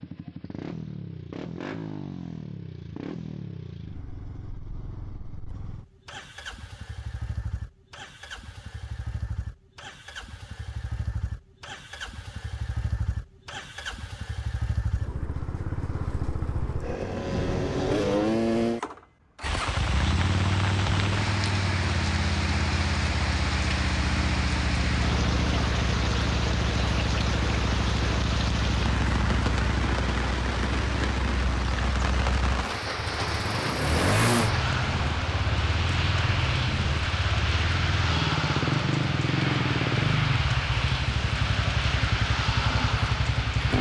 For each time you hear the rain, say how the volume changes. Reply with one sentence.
You can hear the rain from 19.4 to 43.7 s, at a steady volume.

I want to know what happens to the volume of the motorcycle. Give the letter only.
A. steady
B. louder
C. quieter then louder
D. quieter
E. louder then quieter
B.